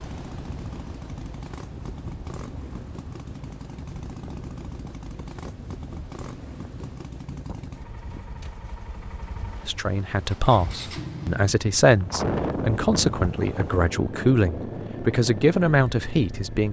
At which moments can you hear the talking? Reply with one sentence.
The talking can be heard from 9.7 to 16.6 s.